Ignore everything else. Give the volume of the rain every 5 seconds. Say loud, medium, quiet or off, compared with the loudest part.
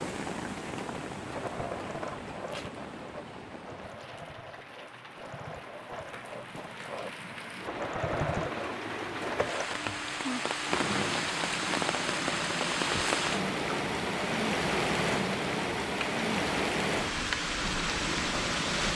medium, medium, loud, loud.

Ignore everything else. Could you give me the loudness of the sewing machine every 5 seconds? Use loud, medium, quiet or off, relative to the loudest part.
medium, loud, loud, loud.